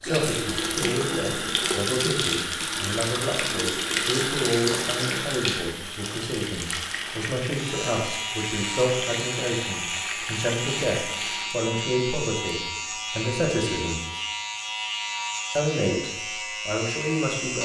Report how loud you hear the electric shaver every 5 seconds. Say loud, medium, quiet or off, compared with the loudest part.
off, loud, loud, loud.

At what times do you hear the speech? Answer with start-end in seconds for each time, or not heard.
0.0-14.0, 15.6-17.6.